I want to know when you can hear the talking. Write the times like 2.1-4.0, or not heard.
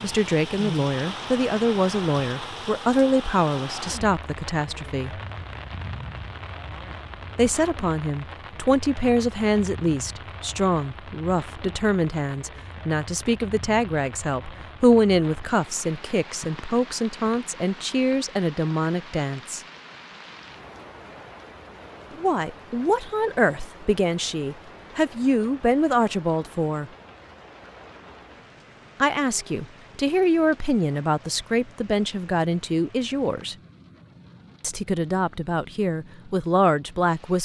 0.0-5.2, 7.3-19.6, 22.1-26.9, 29.0-33.5, 34.6-37.4.